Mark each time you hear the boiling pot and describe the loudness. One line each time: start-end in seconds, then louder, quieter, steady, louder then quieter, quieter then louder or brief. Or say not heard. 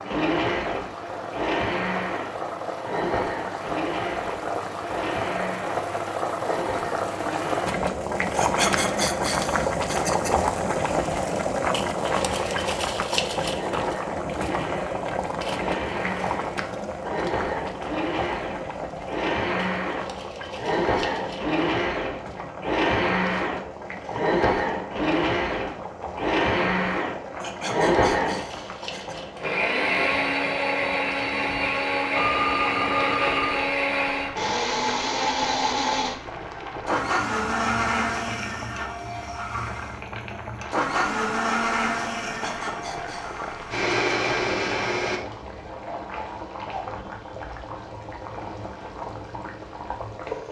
0.0-50.4 quieter.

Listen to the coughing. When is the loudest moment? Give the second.
9 s.